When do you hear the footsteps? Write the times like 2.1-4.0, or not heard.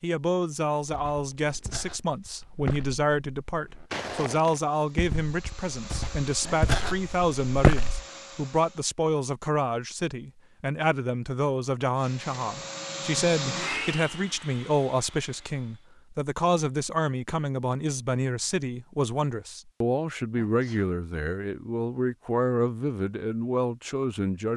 0.8-8.1.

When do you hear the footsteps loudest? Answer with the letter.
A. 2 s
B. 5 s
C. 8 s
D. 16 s
C.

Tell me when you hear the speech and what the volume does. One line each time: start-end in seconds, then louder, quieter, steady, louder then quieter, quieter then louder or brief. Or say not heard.
0.0-24.5 steady.